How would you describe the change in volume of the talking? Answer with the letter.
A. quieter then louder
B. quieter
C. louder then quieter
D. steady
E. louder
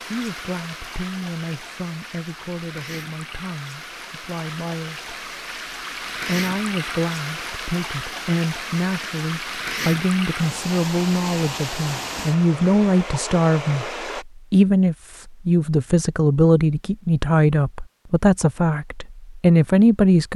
E.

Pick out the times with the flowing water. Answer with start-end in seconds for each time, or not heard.
0.0-14.2.